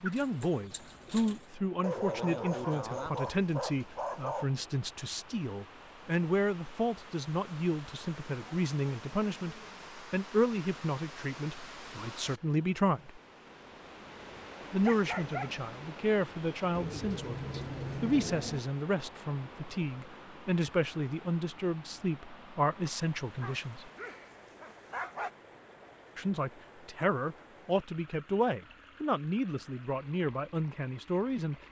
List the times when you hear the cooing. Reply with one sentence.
The cooing can be heard from 0.1 to 1.4 s and from 16.7 to 18.6 s.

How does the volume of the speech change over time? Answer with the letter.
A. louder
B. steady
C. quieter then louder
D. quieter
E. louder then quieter
B.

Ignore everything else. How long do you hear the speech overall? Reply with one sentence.
The speech can be heard for 28 seconds in total.